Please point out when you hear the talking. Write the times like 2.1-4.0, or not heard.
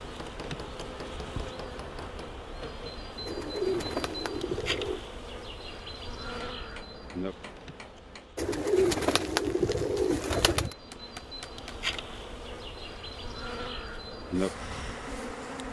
not heard.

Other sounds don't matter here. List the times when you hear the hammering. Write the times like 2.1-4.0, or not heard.
0.0-2.2, 6.3-8.3, 10.7-12.1.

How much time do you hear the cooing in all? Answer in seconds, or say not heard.
4 s.